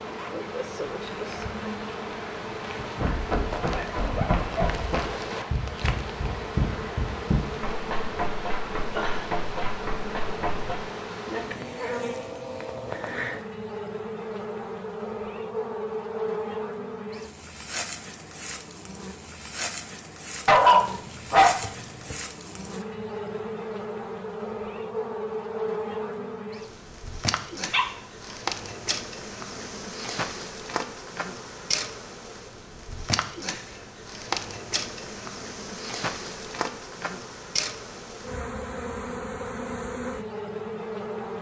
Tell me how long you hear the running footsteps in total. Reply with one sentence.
The running footsteps can be heard for 8 seconds in total.